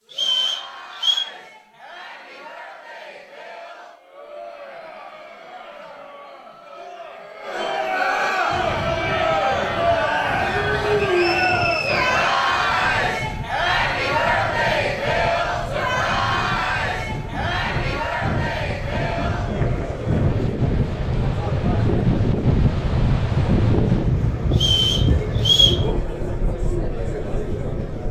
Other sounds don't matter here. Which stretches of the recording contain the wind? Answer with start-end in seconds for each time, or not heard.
8.5-28.0.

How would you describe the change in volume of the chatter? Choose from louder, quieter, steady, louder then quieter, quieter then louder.
louder then quieter.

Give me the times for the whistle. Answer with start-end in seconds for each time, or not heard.
0.1-1.2, 11.2-12.2, 24.5-25.9.